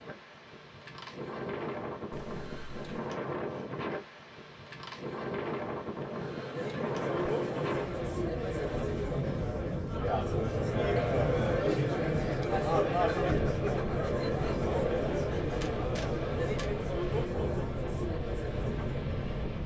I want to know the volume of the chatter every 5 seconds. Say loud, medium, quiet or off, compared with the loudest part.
off, medium, loud, medium.